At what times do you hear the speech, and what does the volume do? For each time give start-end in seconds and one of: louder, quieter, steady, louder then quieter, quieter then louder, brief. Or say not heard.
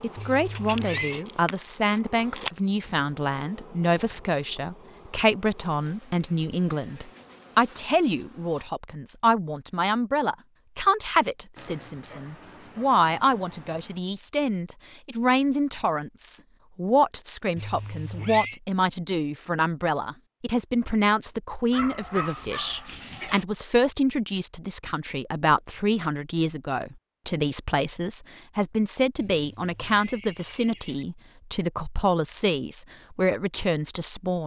0.0-34.4 steady.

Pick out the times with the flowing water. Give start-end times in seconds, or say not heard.
not heard.